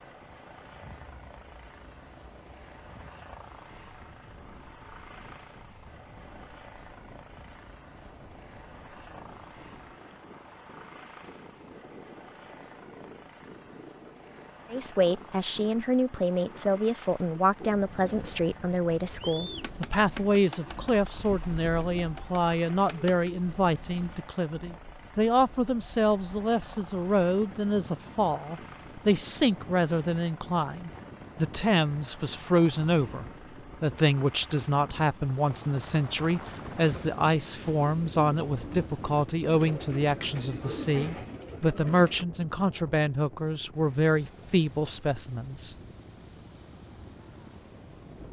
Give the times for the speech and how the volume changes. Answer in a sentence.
You can hear the speech from 14.7 to 45.8 s, at a steady volume.